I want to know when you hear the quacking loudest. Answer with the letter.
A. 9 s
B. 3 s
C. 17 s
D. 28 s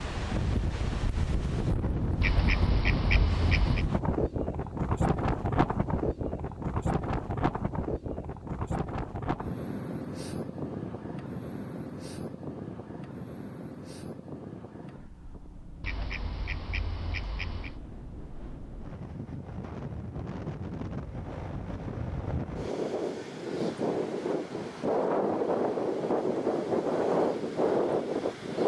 B.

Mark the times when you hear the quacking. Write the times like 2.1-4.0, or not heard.
2.2-3.9, 15.8-17.8.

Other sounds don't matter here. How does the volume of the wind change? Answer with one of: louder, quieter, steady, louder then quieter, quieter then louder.
quieter then louder.